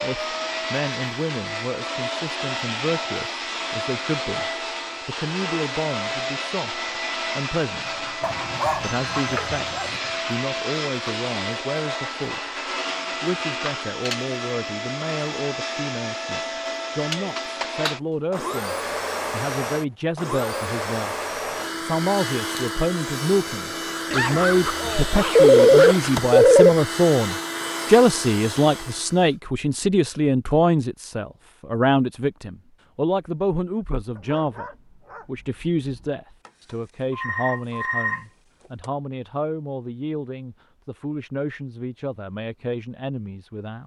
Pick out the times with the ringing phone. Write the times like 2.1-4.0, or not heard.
7.8-10.1, 25.4-26.7, 37.1-38.9.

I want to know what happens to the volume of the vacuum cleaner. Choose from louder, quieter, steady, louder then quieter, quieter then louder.
steady.